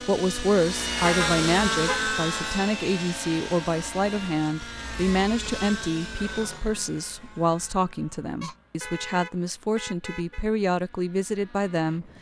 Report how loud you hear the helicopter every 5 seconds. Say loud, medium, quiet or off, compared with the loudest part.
loud, medium, quiet.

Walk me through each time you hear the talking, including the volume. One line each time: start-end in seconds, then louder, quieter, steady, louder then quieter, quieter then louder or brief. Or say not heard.
0.1-12.1 steady.